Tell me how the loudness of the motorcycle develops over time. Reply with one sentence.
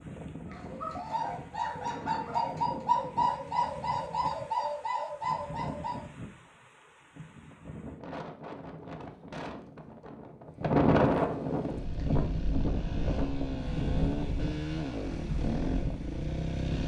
The loudness of the motorcycle goes up.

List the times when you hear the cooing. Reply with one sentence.
You can hear the cooing from 0.5 to 6.0 s.